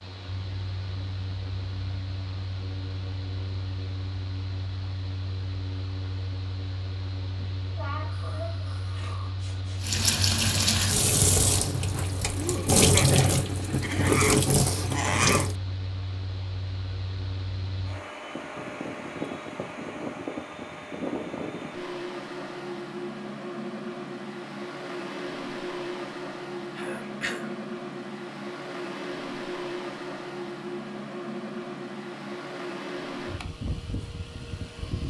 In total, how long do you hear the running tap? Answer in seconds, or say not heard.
6 s.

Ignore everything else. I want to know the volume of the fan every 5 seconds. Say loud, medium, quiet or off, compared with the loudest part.
medium, medium, medium, loud, loud, loud, loud.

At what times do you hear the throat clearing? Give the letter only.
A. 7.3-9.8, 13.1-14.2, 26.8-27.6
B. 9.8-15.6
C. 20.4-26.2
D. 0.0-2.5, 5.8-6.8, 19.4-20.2
A.